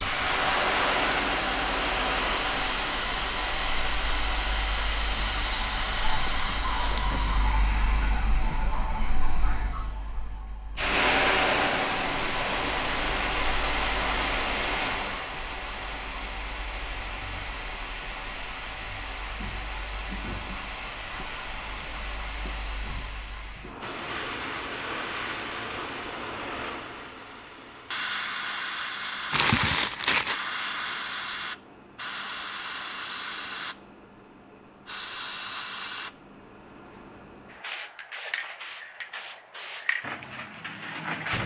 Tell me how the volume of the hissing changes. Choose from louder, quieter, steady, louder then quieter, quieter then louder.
quieter.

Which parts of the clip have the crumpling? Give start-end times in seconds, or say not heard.
6.2-7.3, 29.3-30.4.